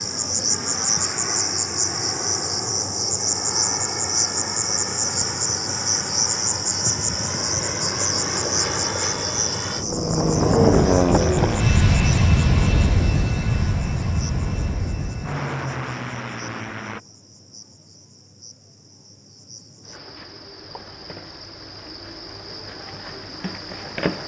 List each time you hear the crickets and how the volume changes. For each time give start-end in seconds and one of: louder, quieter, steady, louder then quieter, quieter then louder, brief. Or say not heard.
0.0-24.2 quieter then louder.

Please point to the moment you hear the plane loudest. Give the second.
11 s.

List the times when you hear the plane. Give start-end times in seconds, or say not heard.
0.0-17.0.